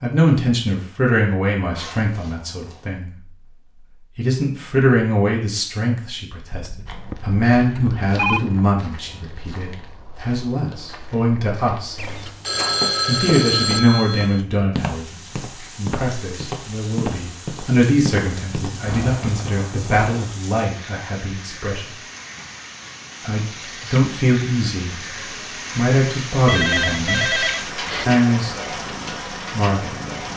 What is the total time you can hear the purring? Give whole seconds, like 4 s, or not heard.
2 s.